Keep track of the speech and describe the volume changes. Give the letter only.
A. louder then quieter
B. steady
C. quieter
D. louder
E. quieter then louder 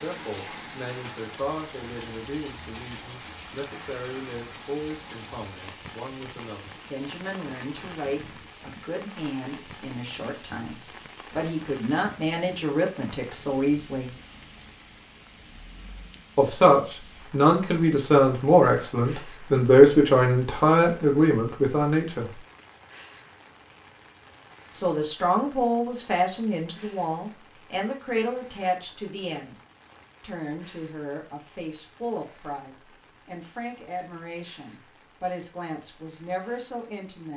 A.